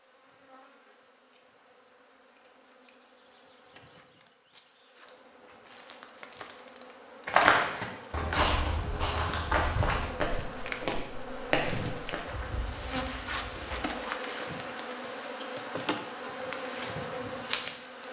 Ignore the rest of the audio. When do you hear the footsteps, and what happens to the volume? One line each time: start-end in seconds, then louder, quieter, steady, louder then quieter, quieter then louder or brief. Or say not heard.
7.2-13.9 quieter.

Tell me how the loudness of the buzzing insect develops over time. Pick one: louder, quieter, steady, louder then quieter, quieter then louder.
louder.